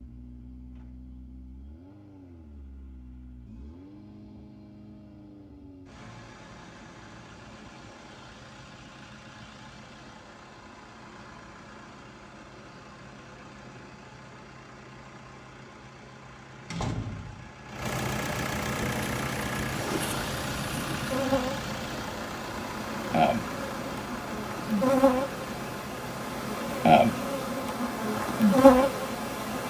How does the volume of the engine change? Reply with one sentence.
The volume of the engine goes up, then down.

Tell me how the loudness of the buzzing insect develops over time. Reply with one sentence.
The volume of the buzzing insect goes up.